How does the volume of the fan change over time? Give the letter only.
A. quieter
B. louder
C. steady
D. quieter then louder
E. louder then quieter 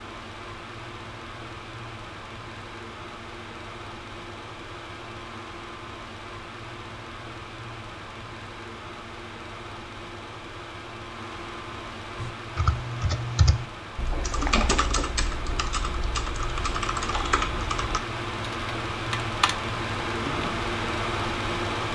B.